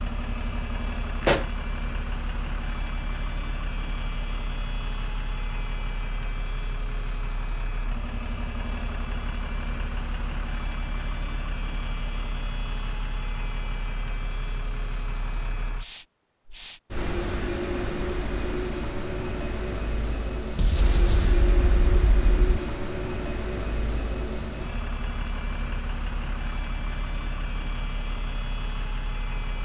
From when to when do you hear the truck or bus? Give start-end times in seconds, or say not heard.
0.0-29.6.